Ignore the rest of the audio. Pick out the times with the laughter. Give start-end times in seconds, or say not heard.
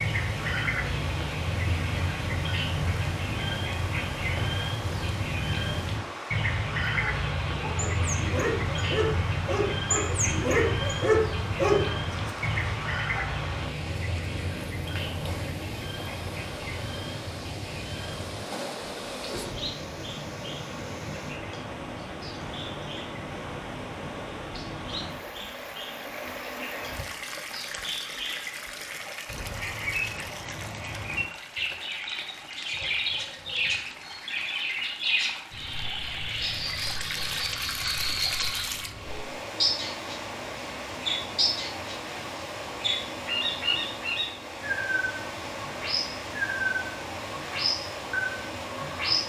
not heard.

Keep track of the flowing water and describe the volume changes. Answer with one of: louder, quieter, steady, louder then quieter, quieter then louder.
steady.